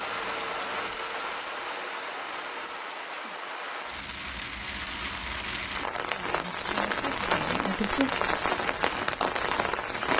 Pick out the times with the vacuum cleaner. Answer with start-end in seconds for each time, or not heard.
0.0-2.9.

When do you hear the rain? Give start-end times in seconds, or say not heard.
0.0-10.1.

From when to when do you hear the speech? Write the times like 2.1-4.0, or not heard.
6.2-8.1.